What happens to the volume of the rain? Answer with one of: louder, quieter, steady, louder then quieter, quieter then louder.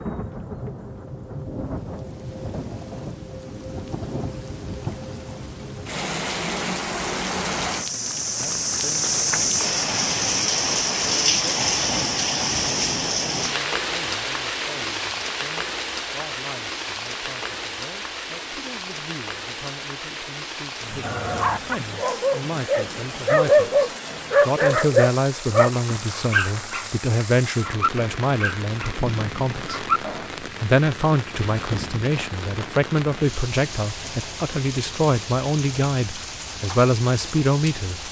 louder then quieter.